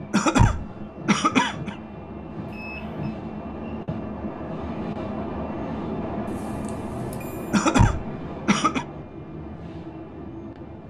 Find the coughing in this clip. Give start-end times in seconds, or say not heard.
0.1-1.8, 7.5-8.8.